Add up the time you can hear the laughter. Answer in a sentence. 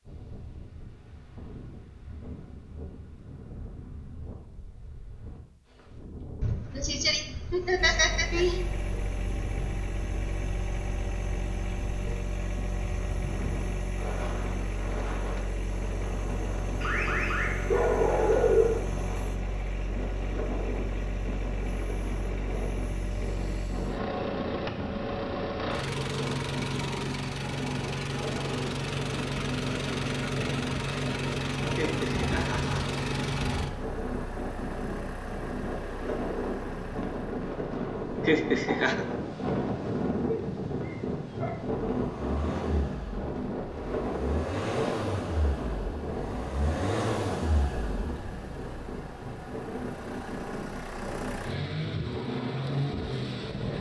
You can hear the laughter for 4 seconds altogether.